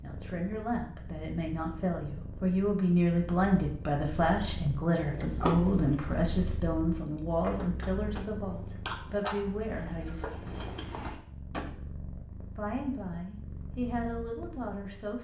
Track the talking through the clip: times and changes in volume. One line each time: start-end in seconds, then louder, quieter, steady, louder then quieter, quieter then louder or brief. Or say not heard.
0.0-10.3 louder then quieter
12.6-15.1 brief.